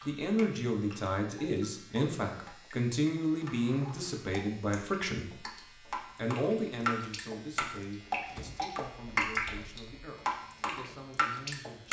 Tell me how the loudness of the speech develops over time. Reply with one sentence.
The loudness of the speech goes down.